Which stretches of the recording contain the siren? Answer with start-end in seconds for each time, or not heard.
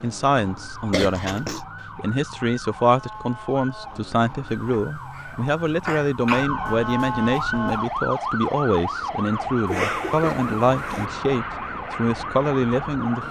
0.0-13.2.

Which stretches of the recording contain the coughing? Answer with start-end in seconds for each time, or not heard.
0.9-1.6, 4.7-6.5, 9.7-11.1.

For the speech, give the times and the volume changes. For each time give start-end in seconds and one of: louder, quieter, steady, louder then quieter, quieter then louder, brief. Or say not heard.
0.0-13.2 steady.